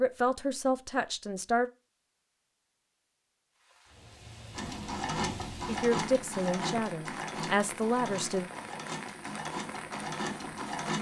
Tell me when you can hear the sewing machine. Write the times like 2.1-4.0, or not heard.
4.5-10.9.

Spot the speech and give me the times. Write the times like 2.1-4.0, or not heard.
0.0-1.7, 5.7-8.5.